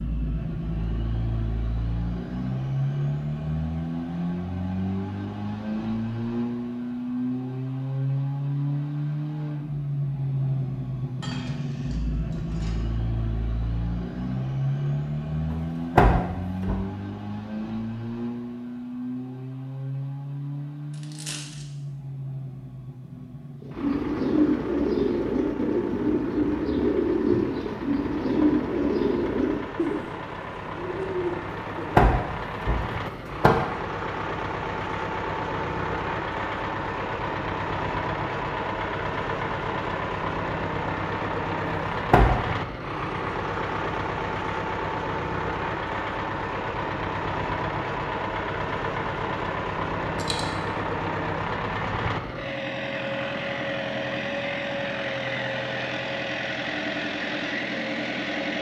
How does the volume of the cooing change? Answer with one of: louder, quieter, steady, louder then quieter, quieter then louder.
quieter.